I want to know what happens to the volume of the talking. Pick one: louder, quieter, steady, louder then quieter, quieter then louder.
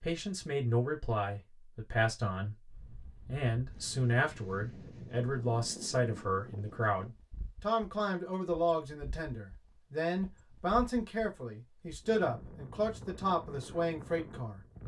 steady.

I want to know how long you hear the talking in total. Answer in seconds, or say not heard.
15 s.